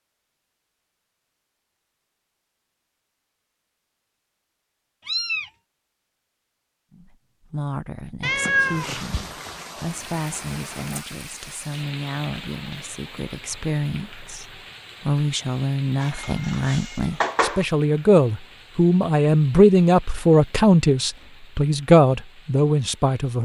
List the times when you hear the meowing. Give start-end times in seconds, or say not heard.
5.0-5.5, 8.2-9.0, 16.0-17.6.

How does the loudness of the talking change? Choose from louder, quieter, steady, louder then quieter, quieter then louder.
louder.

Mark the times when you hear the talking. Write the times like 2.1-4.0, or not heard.
6.9-23.4.